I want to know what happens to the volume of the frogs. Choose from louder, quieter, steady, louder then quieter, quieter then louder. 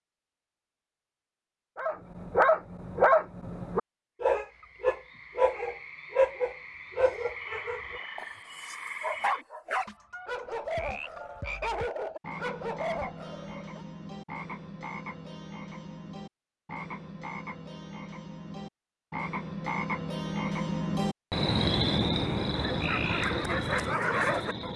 louder.